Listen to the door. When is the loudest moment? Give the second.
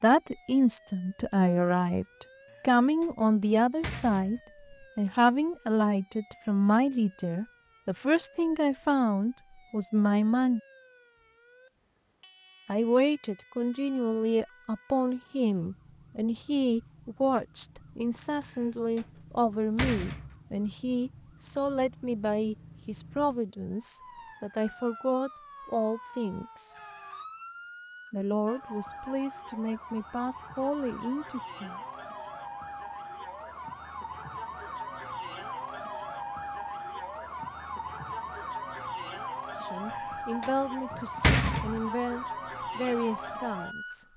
41 s.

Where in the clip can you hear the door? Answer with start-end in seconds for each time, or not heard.
2.5-4.4, 18.4-20.4, 39.9-41.8.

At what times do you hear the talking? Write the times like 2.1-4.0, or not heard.
0.0-10.6, 12.7-26.8, 28.1-31.8, 39.5-44.0.